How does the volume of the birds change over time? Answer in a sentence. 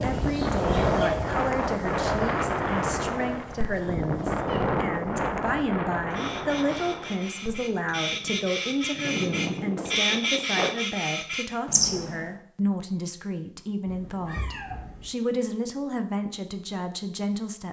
The loudness of the birds goes down, then up.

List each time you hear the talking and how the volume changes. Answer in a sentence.
You can hear the talking from 0.0 to 17.6 s, at a steady volume.